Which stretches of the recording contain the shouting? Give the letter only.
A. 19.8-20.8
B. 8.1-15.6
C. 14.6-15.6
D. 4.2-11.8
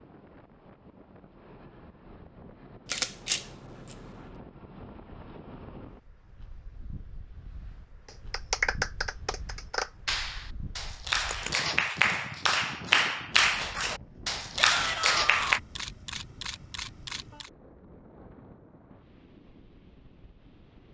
C.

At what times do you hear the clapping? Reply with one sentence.
You can hear the clapping from 8.1 to 15.6 s.